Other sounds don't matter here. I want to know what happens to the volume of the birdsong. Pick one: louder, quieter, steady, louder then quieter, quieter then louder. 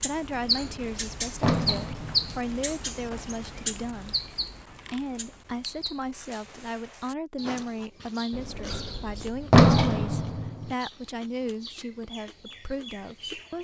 quieter.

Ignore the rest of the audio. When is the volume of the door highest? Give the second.
10 s.